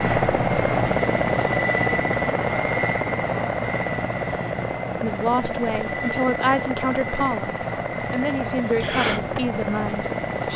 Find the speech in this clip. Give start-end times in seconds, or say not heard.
5.0-10.5.